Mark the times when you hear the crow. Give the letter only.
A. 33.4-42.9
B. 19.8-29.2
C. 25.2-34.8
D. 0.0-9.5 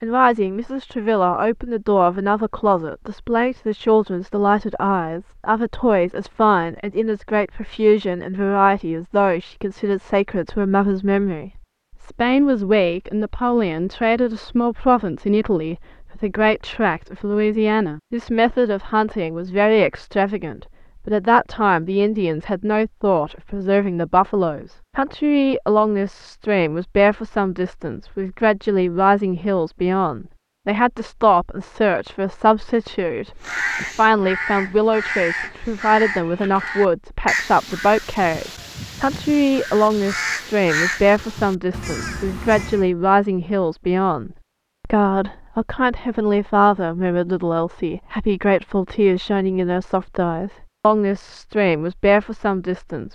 A.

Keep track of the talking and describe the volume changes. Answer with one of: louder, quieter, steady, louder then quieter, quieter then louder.
steady.